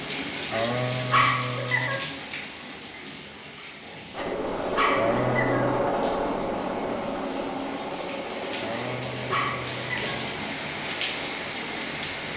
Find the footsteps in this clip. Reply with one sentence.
The footsteps can't be heard in this clip.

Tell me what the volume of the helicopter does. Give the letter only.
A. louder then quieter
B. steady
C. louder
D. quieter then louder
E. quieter
E.